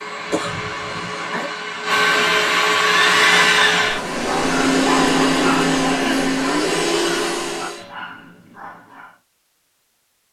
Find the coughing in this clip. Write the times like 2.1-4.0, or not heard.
0.2-1.5, 5.8-6.3.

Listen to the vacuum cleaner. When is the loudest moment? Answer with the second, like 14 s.
3 s.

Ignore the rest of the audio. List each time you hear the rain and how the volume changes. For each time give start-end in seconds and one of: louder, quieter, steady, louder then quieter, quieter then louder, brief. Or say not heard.
not heard.